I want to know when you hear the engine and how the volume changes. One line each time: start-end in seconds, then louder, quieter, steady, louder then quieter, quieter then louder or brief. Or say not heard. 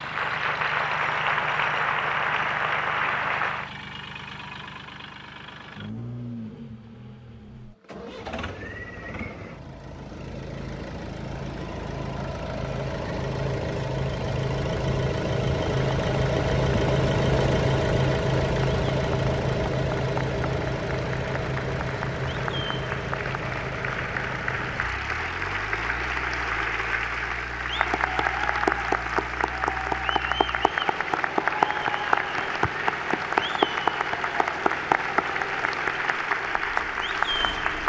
0.0-37.8 louder then quieter.